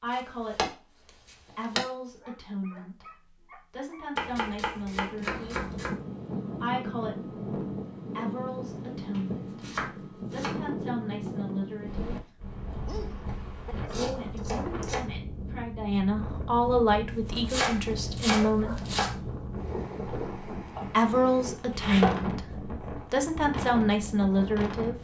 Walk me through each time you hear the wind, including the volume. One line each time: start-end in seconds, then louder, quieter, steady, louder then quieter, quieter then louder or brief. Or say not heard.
4.9-25.0 steady.